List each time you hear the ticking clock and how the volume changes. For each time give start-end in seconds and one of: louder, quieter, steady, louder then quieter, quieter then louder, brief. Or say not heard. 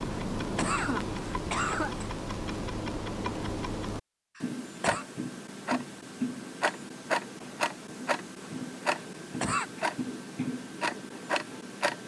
0.0-12.0 steady.